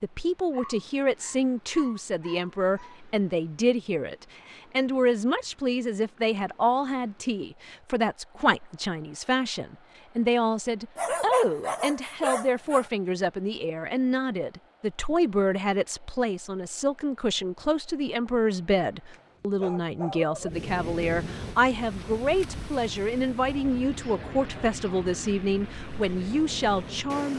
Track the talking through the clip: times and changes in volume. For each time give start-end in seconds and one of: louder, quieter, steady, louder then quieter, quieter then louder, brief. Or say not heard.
0.0-27.3 steady.